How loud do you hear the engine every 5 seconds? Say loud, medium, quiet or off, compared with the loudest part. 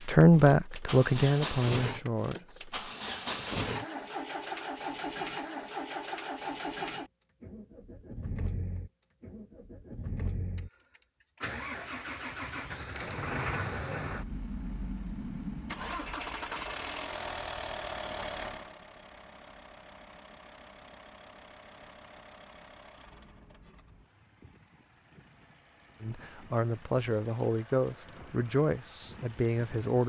loud, loud, loud, loud, quiet, quiet.